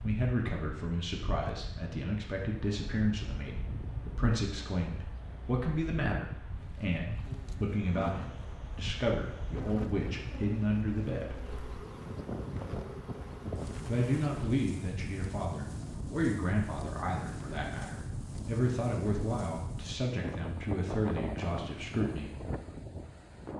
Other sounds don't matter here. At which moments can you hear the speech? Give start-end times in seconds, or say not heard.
0.0-11.3, 13.8-22.4.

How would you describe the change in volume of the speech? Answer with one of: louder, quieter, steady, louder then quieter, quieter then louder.
steady.